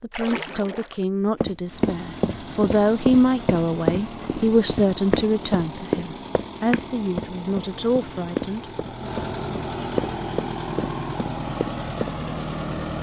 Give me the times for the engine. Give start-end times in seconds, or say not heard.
1.6-12.9.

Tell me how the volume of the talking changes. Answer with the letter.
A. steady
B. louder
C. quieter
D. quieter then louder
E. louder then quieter
E.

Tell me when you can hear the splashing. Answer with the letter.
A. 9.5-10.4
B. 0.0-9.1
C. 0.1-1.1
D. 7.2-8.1
C.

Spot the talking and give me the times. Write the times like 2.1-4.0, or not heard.
0.0-9.1.